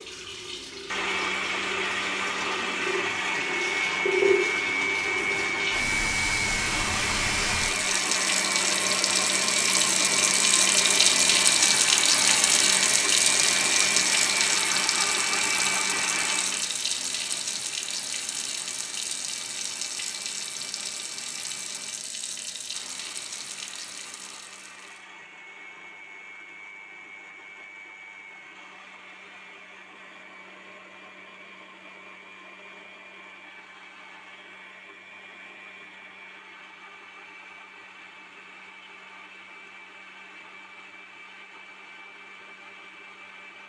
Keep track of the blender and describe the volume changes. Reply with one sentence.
The volume of the blender goes down.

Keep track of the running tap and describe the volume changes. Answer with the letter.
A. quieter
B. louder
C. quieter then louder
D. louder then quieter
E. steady
D.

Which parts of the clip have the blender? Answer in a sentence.
You can hear the blender from 0.0 to 43.6 s.